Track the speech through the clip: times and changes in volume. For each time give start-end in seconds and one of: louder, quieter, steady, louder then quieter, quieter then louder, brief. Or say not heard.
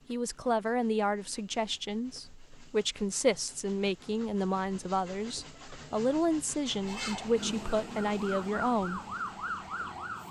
0.1-9.0 steady.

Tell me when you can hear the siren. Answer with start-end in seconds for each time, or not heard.
6.8-10.2.